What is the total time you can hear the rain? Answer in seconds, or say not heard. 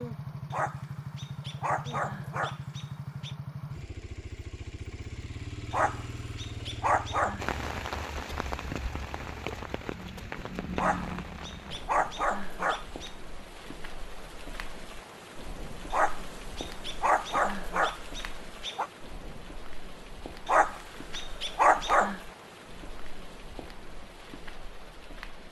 18 s.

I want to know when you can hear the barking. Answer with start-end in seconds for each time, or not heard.
0.5-3.4, 5.7-7.5, 10.8-13.1, 15.9-18.9, 20.4-22.2.